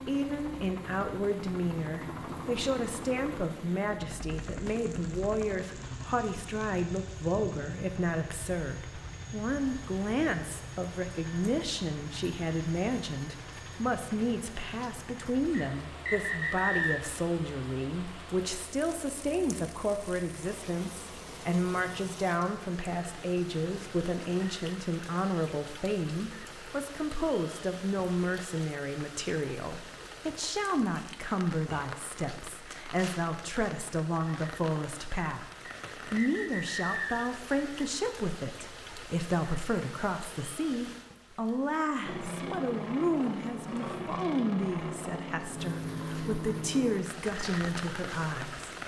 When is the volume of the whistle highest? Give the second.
17 s.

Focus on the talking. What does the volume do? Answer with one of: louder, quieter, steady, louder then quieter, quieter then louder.
steady.